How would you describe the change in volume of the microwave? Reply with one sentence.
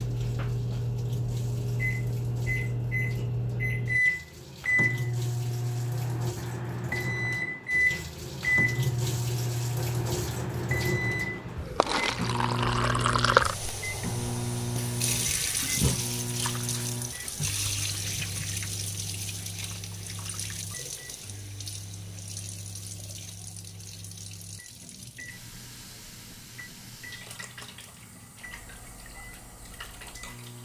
The volume of the microwave goes down.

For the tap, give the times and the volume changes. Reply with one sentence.
The tap can be heard from 0.0 to 30.5 s, getting louder then quieter.